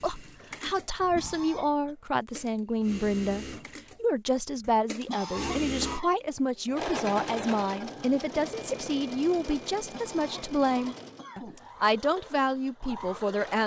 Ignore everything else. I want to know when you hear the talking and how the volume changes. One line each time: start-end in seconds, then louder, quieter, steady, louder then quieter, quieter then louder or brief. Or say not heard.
0.0-13.6 steady.